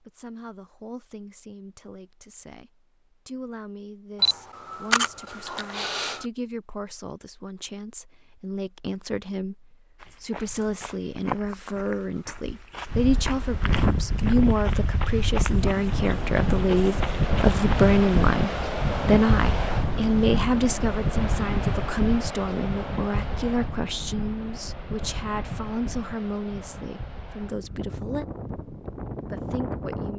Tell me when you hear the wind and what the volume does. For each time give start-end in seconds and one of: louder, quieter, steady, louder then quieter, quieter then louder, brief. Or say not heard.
12.8-30.1 quieter.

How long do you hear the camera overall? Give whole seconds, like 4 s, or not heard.
2 s.